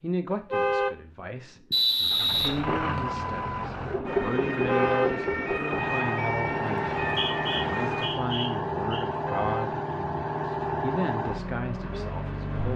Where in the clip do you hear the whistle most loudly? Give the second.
2 s.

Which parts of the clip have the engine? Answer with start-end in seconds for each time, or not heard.
2.0-12.7.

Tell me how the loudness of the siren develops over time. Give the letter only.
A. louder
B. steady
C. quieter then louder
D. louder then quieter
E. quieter
B.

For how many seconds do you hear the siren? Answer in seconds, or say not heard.
4 s.